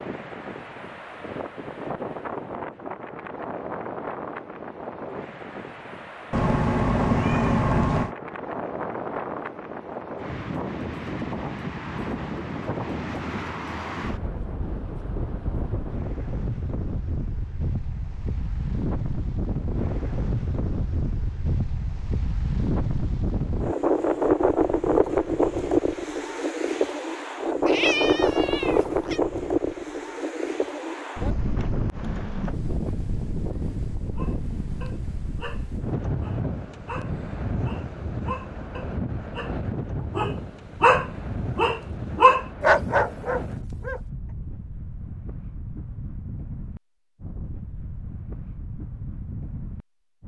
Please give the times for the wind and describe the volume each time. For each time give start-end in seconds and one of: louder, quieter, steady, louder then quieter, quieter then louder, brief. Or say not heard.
0.0-50.2 louder then quieter.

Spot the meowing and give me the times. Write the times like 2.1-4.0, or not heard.
6.3-8.2, 27.6-29.2.